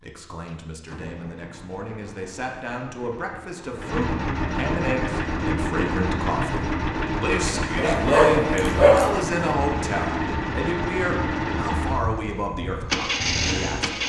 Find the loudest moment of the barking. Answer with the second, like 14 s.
9 s.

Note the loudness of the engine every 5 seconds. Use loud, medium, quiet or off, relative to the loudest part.
medium, loud, loud.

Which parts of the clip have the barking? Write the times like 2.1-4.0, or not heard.
7.8-9.3.